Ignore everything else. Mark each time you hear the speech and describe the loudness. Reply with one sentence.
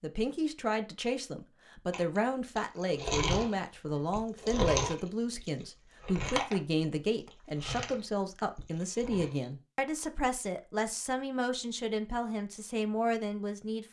The speech can be heard from 0.0 to 13.8 s, at a steady volume.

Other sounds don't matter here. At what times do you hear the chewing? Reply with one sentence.
You can hear the chewing from 1.9 to 9.5 s.